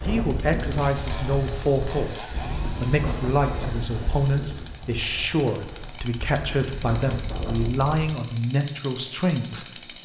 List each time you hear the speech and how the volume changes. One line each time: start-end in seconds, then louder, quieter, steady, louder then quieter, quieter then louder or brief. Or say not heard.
0.0-10.0 steady.